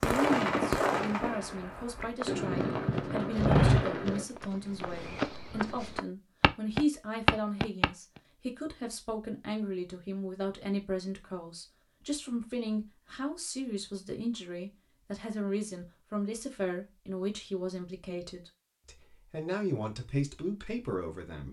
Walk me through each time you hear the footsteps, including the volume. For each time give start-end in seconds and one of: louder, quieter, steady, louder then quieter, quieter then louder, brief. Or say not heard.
2.2-7.9 quieter then louder.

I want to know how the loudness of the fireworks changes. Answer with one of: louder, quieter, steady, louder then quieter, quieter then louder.
quieter then louder.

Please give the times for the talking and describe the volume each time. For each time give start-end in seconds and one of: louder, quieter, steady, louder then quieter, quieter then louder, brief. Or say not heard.
0.0-21.4 steady.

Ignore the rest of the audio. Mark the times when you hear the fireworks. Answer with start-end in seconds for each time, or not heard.
0.0-4.2.